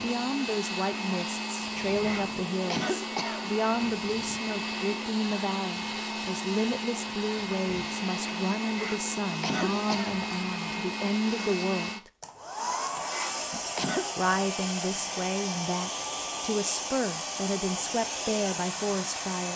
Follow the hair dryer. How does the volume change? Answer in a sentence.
The volume of the hair dryer stays about the same.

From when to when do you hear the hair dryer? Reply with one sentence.
The hair dryer can be heard from 0.0 to 19.5 s.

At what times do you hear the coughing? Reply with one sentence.
The coughing can be heard from 2.0 to 3.5 s, from 8.8 to 10.2 s and from 13.1 to 14.2 s.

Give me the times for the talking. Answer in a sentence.
You can hear the talking from 0.0 to 12.1 s and from 13.5 to 19.5 s.